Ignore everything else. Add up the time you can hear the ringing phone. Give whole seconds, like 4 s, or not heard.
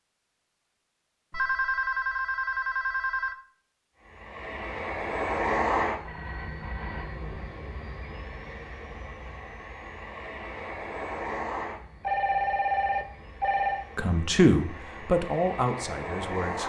5 s.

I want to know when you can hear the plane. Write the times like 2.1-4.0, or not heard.
4.0-16.6.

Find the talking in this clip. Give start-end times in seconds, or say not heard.
13.9-16.6.